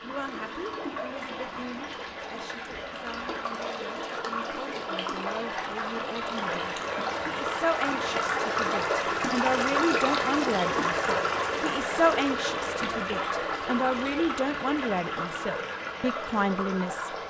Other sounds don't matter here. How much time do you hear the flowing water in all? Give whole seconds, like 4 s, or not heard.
17 s.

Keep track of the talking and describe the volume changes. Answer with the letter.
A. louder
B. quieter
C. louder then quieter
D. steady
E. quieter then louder
A.